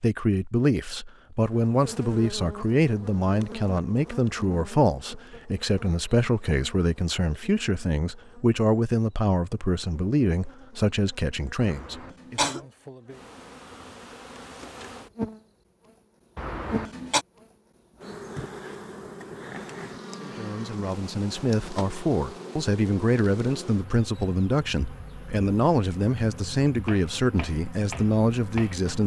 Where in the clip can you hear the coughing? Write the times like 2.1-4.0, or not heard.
11.6-12.6, 16.4-17.2.